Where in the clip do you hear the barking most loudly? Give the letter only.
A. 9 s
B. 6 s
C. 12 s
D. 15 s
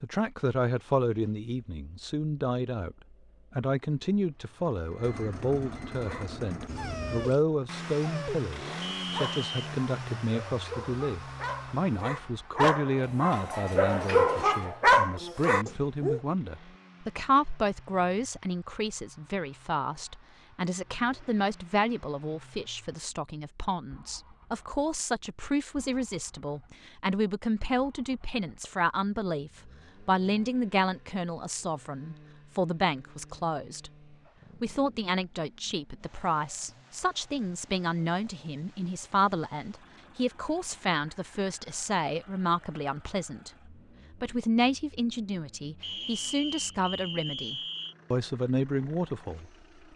D.